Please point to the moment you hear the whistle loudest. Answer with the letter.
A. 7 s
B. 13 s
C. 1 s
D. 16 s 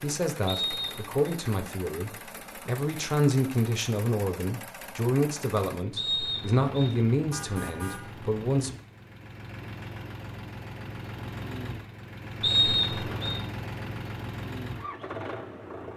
B.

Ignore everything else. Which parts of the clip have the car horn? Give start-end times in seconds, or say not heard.
7.3-8.2.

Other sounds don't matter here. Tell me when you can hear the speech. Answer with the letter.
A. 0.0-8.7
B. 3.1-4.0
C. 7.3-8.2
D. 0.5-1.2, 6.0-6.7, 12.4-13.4
A.